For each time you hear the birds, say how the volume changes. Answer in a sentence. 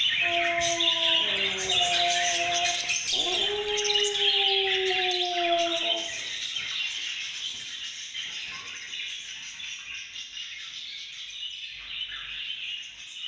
You can hear the birds from 0.0 to 13.2 s, getting quieter.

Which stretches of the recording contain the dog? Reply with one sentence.
You can hear the dog from 0.2 to 6.0 s.